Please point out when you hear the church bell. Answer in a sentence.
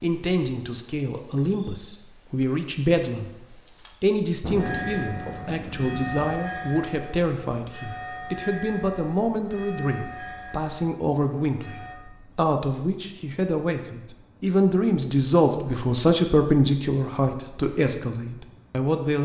You can hear the church bell from 4.5 to 11.9 s.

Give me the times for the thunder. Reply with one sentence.
The thunder can be heard from 4.4 to 6.4 s.